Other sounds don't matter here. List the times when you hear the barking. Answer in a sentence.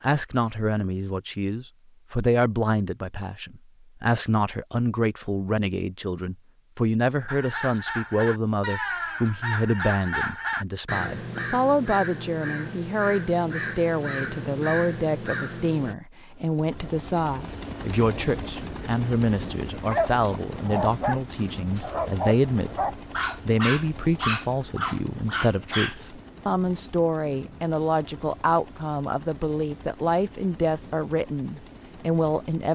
You can hear the barking from 19.9 to 26.0 s.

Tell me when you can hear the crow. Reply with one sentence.
The crow can be heard from 7.2 to 15.9 s.